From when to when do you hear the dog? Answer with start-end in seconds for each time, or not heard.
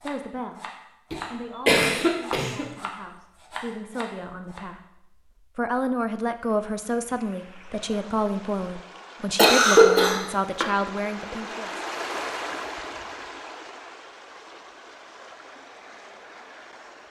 not heard.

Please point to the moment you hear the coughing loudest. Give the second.
10 s.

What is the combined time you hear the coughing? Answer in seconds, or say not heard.
3 s.